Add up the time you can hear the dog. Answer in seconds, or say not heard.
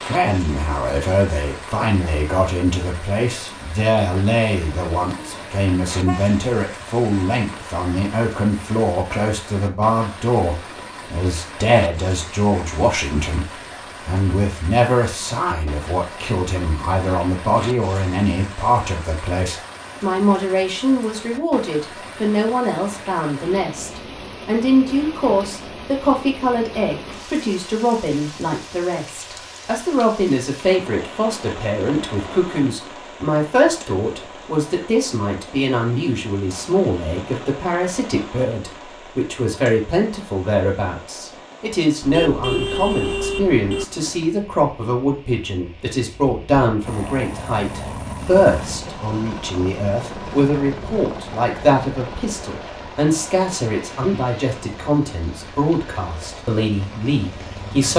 not heard.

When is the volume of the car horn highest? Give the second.
43 s.